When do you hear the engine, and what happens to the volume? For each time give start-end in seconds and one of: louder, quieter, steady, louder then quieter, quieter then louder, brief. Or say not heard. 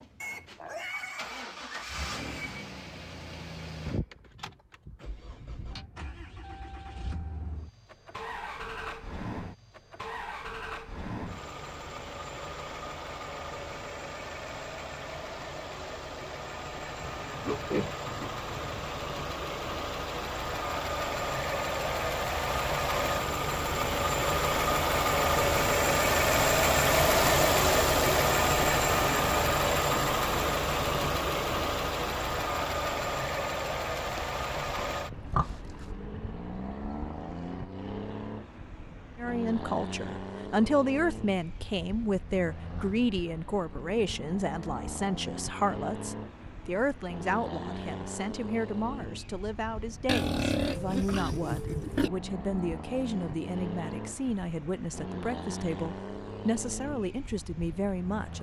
0.0-58.3 louder then quieter.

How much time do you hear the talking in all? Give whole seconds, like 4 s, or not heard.
19 s.